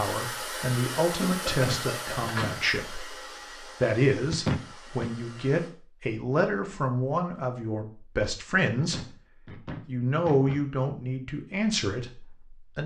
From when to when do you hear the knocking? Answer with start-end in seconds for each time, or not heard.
1.5-2.5, 4.3-5.1, 8.8-10.7.